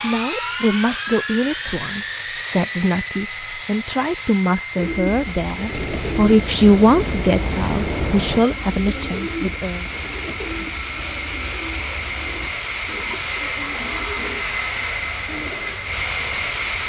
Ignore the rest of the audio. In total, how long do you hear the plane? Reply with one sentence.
You can hear the plane for 17 seconds altogether.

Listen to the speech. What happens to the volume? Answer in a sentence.
The volume of the speech goes up, then down.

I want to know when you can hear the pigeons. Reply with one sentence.
The pigeons can be heard from 4.8 to 15.8 s.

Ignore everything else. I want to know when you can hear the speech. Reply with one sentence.
You can hear the speech from 0.0 to 9.8 s.